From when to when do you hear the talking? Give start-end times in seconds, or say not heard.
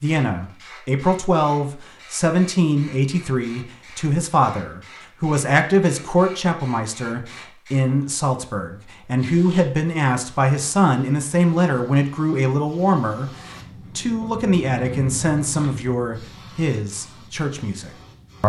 0.0-18.4.